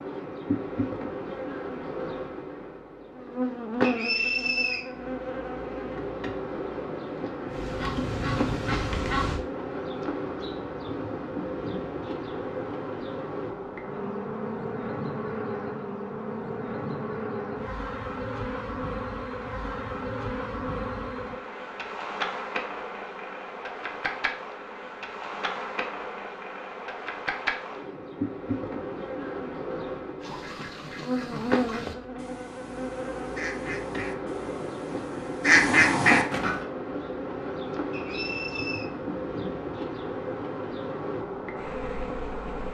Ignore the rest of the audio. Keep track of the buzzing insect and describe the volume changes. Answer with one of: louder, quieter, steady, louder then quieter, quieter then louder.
steady.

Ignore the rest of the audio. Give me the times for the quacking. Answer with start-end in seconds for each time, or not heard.
7.5-9.4, 30.2-36.6.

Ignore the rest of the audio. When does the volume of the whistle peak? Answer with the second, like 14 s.
4 s.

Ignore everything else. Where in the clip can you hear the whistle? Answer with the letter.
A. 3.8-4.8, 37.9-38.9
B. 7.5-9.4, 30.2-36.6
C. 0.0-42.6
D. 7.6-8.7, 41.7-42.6
A.